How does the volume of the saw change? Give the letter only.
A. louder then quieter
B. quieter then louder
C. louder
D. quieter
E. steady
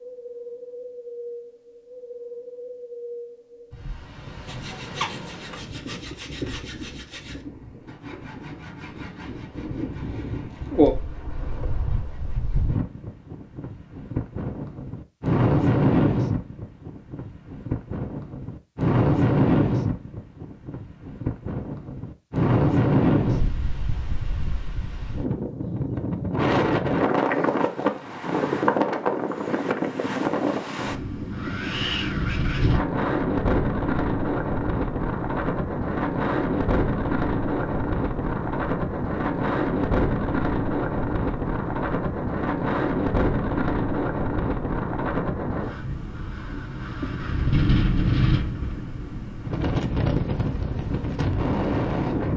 D.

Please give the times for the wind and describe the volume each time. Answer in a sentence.
You can hear the wind from 0.0 to 52.3 s, getting louder.